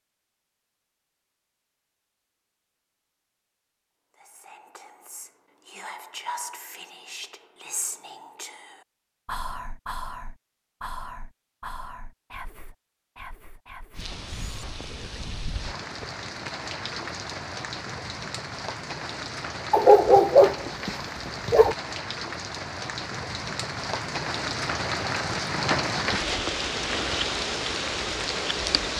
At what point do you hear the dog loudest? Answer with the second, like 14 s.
20 s.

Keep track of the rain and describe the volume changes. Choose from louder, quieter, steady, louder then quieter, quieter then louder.
louder.